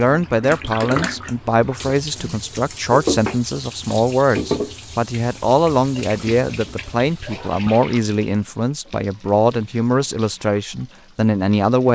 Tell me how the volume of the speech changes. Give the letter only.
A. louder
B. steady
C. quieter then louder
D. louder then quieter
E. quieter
B.